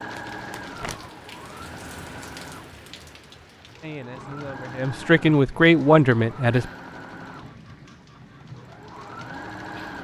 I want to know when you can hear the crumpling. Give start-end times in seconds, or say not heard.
0.1-1.1.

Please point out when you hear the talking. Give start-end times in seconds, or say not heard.
3.8-6.7.